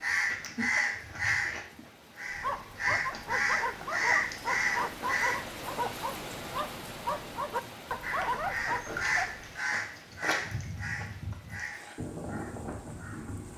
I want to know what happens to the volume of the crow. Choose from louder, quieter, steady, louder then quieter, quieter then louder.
quieter.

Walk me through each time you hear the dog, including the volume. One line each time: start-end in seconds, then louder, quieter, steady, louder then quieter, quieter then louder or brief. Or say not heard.
2.3-9.5 steady.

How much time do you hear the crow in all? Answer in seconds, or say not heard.
11 s.